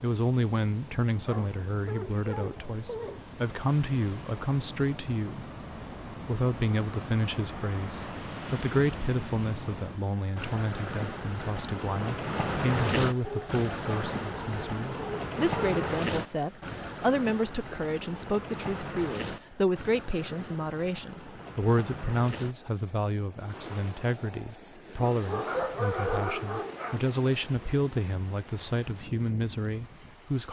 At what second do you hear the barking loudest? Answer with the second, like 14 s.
26 s.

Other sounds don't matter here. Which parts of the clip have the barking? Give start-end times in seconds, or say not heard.
1.2-3.2, 13.2-15.8, 25.1-27.0.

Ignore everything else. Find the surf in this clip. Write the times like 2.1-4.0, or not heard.
0.0-30.4.